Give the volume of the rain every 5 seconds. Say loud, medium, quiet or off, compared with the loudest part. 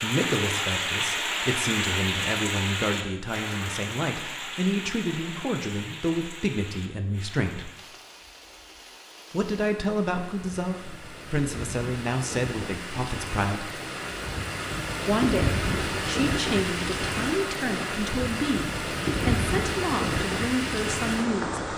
loud, quiet, medium, loud, loud.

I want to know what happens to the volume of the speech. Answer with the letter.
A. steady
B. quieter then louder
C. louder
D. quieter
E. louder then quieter
A.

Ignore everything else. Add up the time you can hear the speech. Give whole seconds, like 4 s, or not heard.
19 s.